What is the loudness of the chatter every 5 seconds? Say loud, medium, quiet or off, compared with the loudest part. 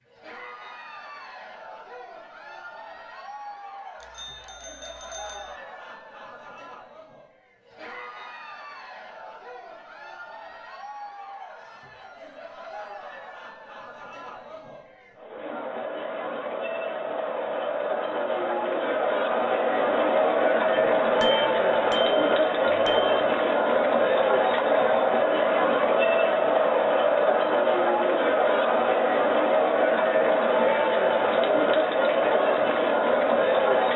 quiet, quiet, quiet, medium, loud, loud, loud.